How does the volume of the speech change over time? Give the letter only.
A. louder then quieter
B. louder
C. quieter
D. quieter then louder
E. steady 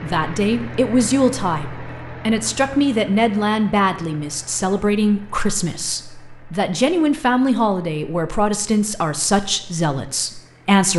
E.